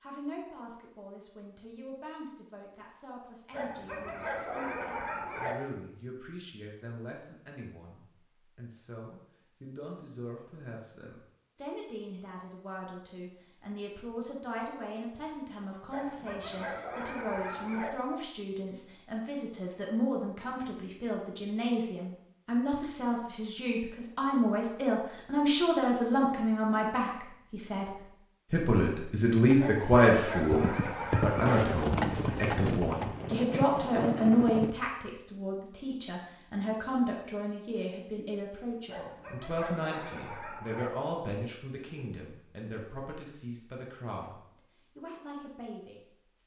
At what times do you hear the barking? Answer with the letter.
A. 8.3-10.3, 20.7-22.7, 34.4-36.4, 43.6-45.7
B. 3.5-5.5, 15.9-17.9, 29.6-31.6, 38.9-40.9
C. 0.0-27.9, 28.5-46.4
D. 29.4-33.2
B.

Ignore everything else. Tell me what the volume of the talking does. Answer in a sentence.
The volume of the talking goes up, then down.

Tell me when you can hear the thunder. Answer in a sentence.
The thunder can be heard from 31.4 to 34.7 s.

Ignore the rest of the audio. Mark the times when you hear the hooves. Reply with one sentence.
The hooves can be heard from 29.4 to 33.2 s.